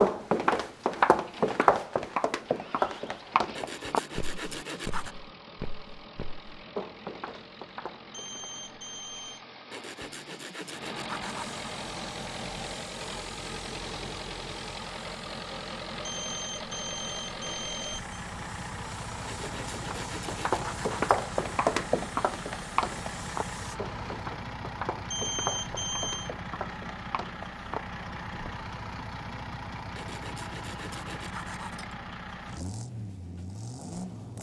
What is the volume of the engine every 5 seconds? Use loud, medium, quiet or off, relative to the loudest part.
medium, medium, loud, loud, loud, loud, loud.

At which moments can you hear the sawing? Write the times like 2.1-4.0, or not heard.
3.5-5.2, 9.7-11.6, 19.2-21.1, 29.9-31.9.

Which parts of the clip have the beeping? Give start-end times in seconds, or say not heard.
8.1-9.4, 16.1-18.1, 25.1-26.3.